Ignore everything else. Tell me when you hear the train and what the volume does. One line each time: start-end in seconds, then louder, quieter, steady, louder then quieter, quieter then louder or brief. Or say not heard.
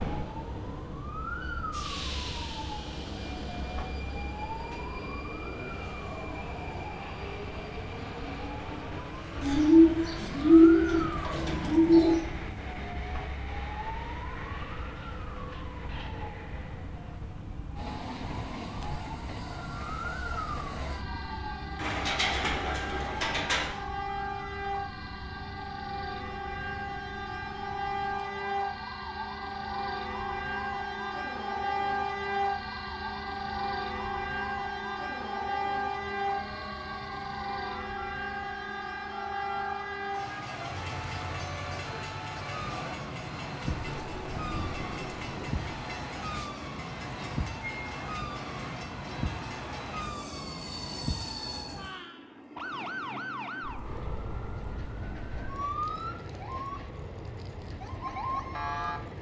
0.0-59.1 louder then quieter.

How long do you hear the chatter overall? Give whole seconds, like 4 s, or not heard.
not heard.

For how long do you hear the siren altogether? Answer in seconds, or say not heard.
59 s.